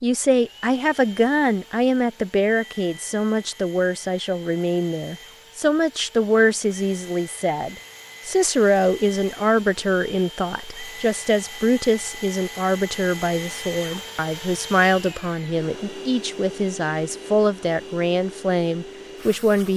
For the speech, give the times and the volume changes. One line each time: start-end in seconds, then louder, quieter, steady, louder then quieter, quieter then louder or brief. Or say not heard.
0.0-19.7 steady.